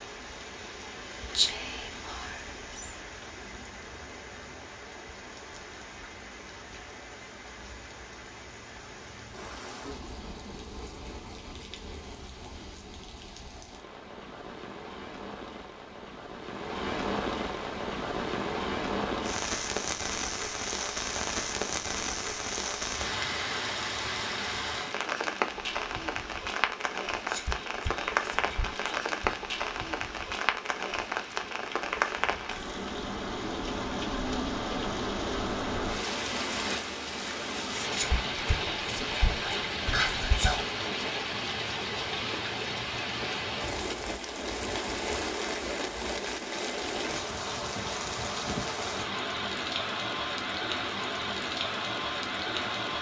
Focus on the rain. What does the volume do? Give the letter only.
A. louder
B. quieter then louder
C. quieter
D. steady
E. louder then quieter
A.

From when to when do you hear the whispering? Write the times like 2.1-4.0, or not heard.
1.4-2.9, 27.2-29.4, 37.9-40.6.